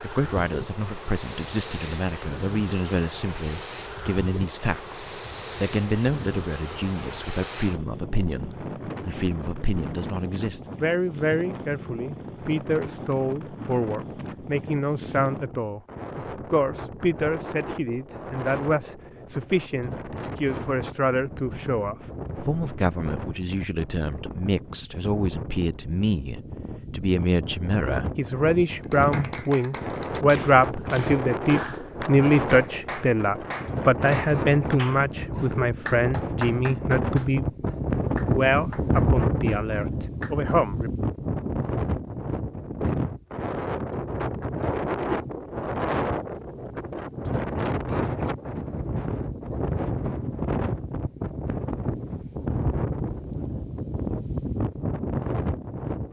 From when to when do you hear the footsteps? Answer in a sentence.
You can't hear the footsteps here.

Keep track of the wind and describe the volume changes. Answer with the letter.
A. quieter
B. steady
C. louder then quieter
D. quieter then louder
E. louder
E.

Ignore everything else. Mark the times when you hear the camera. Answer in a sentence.
The camera can't be heard in this clip.